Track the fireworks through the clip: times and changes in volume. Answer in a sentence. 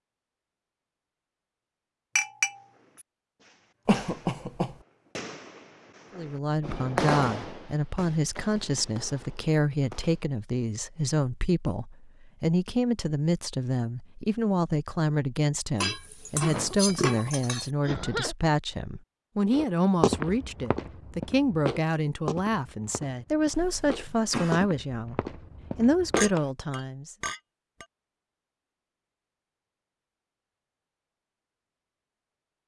You can hear the fireworks from 2.6 to 10.2 s, getting louder then quieter.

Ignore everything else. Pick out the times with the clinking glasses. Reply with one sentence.
The clinking glasses can be heard from 2.1 to 3.0 s, from 15.8 to 17.7 s and from 26.1 to 27.9 s.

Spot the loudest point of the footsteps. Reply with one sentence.
The volume of the footsteps peaks at 20 seconds.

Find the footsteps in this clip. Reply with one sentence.
You can hear the footsteps from 19.5 to 26.4 s.